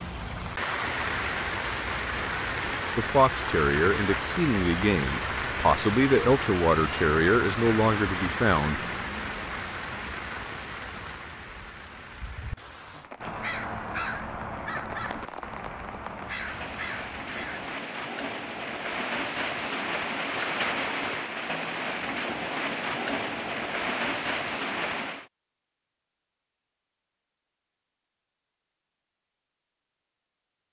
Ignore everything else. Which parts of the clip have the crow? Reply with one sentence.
The crow can be heard from 13.2 to 17.8 s.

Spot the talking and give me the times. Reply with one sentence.
The talking can be heard from 3.0 to 8.8 s.